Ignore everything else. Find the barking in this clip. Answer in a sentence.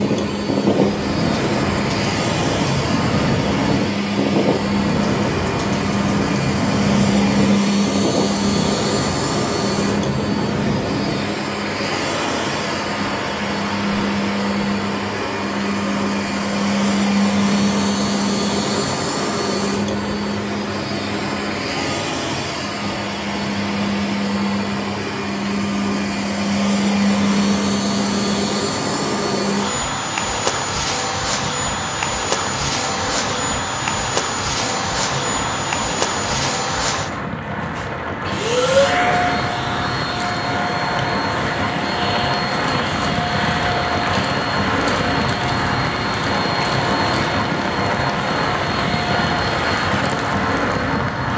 You can't hear the barking here.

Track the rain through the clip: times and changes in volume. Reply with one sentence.
The rain can be heard from 0.0 to 51.3 s, getting quieter then louder.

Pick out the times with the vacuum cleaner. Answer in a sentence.
The vacuum cleaner can be heard from 0.0 to 51.3 s.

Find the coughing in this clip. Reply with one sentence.
The coughing can't be heard in this clip.